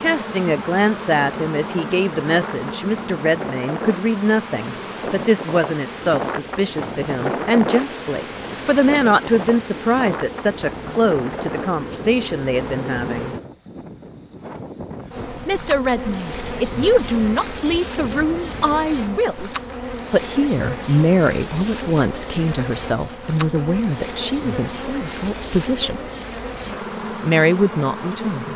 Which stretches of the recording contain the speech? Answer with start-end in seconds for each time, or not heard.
0.0-13.3, 15.4-19.5, 20.1-26.0, 27.2-28.5.